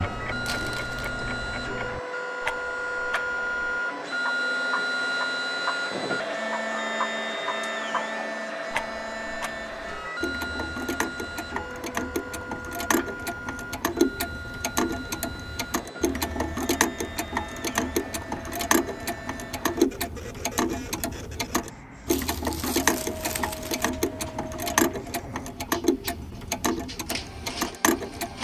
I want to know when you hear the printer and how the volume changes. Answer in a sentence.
You can hear the printer from 0.0 to 28.4 s, getting quieter.